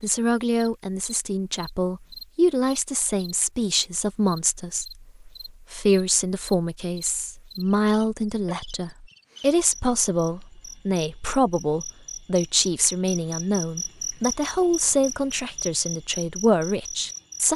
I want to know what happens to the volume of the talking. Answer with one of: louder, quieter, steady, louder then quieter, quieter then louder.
steady.